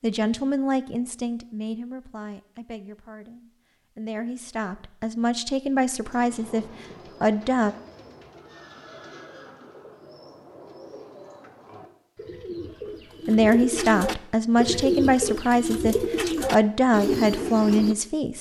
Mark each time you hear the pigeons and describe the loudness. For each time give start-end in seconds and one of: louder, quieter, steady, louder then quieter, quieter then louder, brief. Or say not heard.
6.0-17.9 louder.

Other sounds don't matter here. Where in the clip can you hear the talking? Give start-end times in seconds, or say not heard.
0.0-7.8, 13.2-18.3.